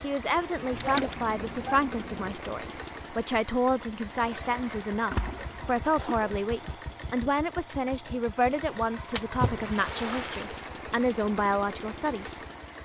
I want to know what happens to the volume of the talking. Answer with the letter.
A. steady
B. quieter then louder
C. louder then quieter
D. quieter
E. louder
A.